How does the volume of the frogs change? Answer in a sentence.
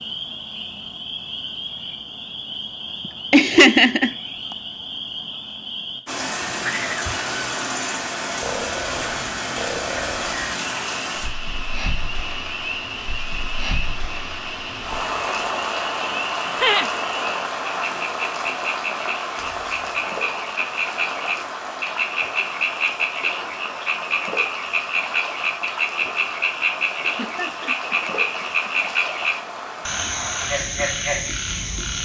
The loudness of the frogs goes up.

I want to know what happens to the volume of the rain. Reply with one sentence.
The loudness of the rain goes down.